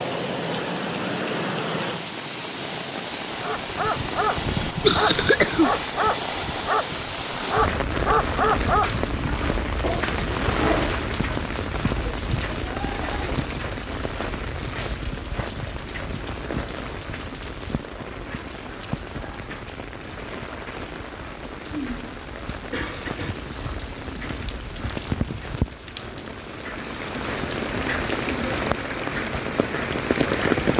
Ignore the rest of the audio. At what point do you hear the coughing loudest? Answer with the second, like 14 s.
5 s.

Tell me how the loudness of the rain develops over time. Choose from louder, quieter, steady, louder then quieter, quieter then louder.
quieter then louder.